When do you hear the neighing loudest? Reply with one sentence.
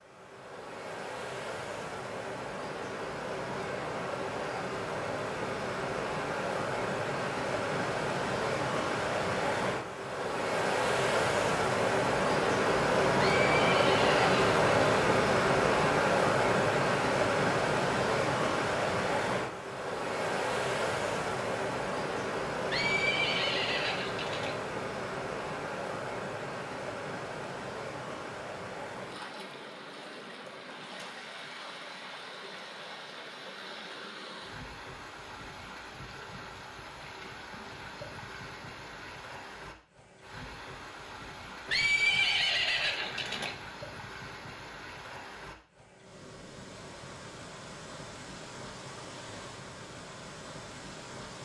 The loudest moment of the neighing is at 42 seconds.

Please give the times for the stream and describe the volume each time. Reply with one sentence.
The stream can be heard from 0.0 to 51.4 s, getting louder then quieter.